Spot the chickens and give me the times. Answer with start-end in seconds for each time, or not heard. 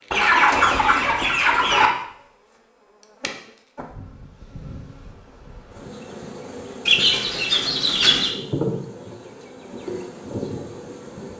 0.1-1.9, 6.8-8.3.